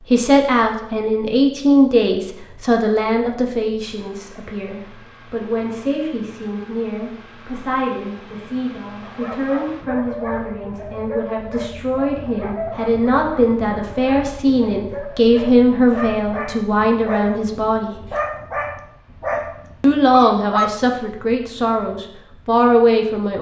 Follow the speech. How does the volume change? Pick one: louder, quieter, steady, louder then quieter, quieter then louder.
quieter then louder.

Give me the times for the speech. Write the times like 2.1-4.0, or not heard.
0.0-17.9, 19.8-23.3.